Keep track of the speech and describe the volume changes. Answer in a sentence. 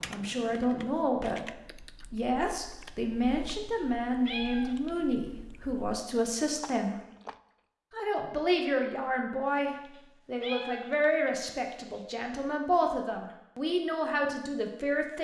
The volume of the speech stays about the same.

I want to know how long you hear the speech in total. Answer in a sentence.
The speech can be heard for 14 seconds in total.